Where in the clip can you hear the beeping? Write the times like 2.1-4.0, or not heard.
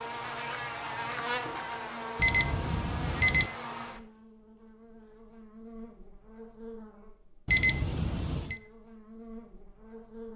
2.1-3.5, 7.5-8.6.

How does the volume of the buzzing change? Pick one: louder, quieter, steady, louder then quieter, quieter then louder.
quieter.